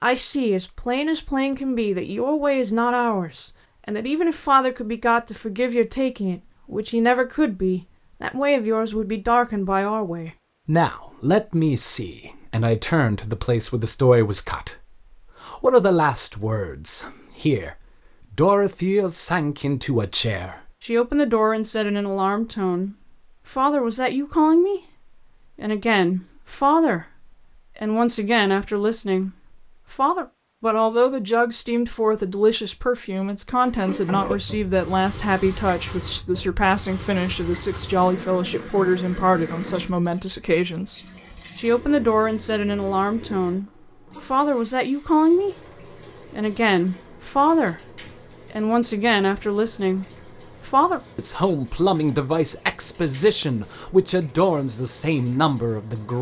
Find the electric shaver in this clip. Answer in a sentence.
You can't hear the electric shaver here.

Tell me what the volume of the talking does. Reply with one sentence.
The loudness of the talking stays about the same.